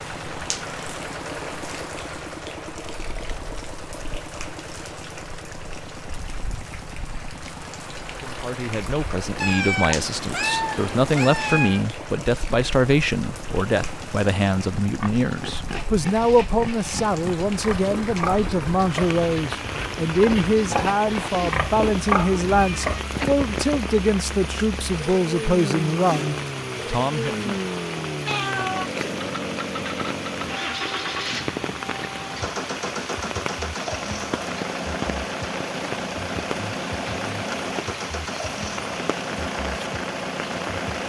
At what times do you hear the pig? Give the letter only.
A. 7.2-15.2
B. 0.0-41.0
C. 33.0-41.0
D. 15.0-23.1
D.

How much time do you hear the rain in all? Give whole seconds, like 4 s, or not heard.
41 s.